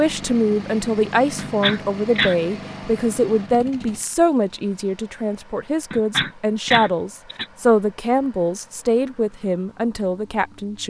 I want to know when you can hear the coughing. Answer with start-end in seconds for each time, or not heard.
1.4-2.4, 5.9-7.5.